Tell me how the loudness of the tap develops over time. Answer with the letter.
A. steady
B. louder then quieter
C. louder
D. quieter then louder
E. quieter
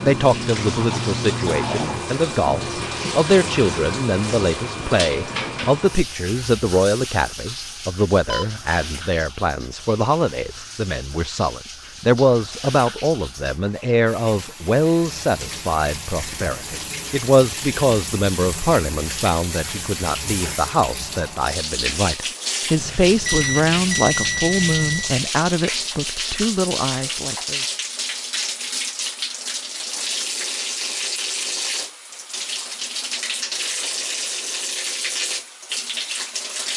D.